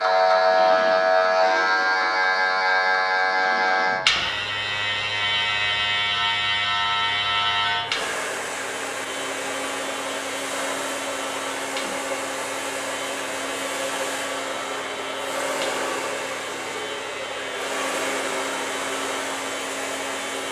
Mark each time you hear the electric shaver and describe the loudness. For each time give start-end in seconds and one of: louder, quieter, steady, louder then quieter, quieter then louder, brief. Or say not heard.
0.0-20.4 quieter.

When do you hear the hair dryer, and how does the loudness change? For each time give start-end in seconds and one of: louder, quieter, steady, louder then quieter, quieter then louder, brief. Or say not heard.
0.1-20.4 louder.